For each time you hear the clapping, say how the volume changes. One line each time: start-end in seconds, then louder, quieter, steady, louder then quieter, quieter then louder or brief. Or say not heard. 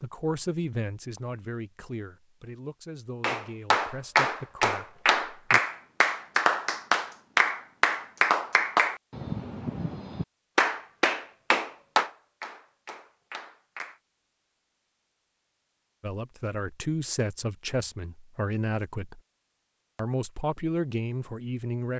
3.2-14.0 quieter.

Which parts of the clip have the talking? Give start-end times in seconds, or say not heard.
0.0-5.6, 16.0-19.2, 19.9-21.9.